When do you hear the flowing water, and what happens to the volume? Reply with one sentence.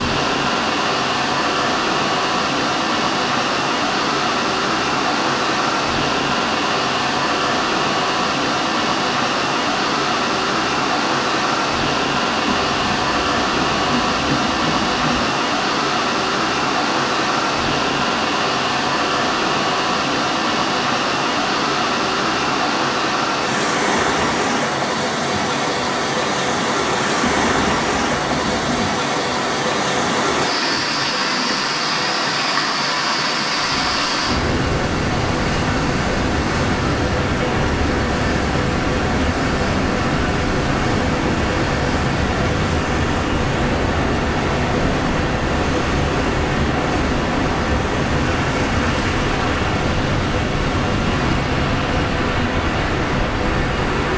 The flowing water can be heard from 0.0 to 54.1 s, at a steady volume.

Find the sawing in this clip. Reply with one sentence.
The sawing can be heard from 12.4 to 15.3 s and from 27.2 to 28.9 s.